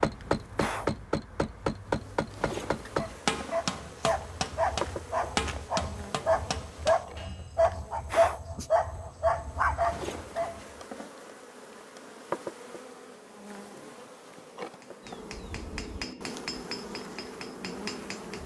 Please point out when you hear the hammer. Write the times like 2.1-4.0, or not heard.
0.0-7.7, 14.7-18.4.